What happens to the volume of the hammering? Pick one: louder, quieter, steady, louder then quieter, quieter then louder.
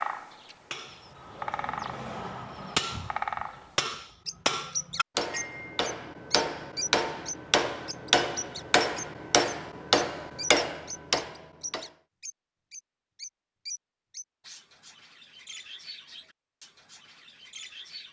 louder.